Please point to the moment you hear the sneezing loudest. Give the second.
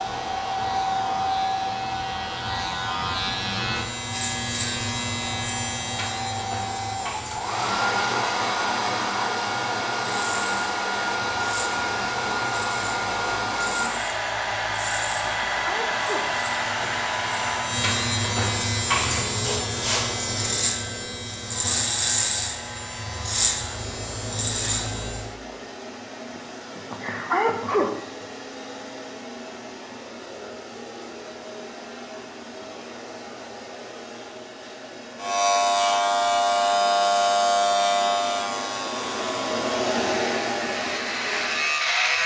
27 s.